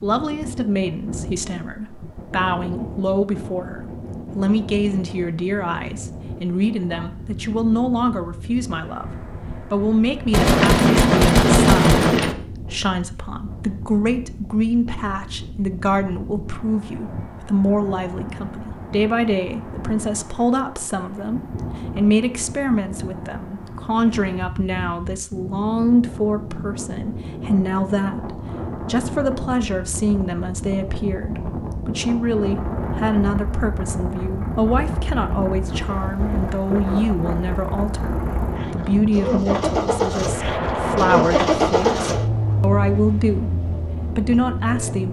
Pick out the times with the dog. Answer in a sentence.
You can't hear the dog here.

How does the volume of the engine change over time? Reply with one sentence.
The loudness of the engine goes up, then down.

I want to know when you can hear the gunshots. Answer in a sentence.
The gunshots can be heard from 10.3 to 12.3 s and from 40.2 to 42.1 s.